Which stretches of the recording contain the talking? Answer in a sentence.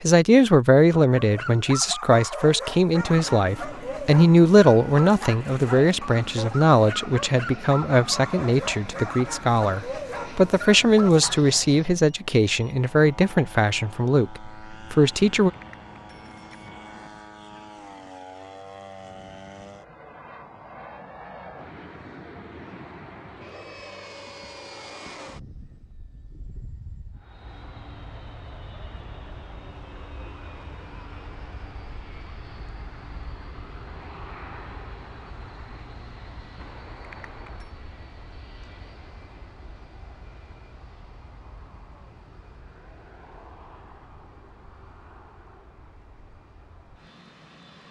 The talking can be heard from 0.0 to 15.5 s.